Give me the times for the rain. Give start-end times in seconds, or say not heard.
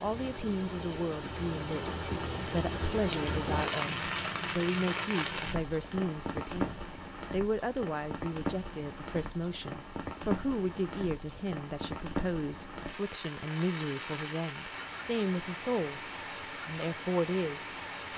0.0-18.1.